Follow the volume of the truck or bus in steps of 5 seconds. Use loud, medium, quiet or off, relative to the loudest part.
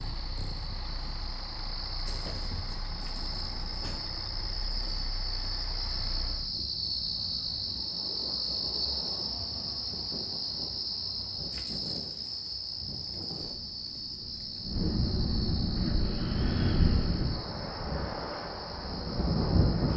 loud, loud, off, off.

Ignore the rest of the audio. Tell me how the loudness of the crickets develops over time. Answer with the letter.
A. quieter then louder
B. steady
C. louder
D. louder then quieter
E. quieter
D.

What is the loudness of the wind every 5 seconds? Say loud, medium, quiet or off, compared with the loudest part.
quiet, quiet, medium, loud.